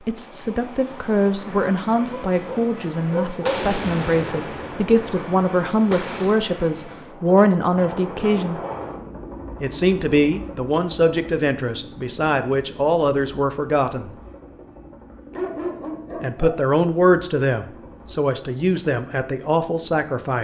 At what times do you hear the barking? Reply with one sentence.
The barking can be heard from 2.1 to 3.6 s, from 7.0 to 8.8 s and from 15.3 to 16.6 s.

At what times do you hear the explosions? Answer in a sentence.
The explosions can be heard from 3.5 to 6.4 s.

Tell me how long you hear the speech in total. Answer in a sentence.
You can hear the speech for 17 seconds altogether.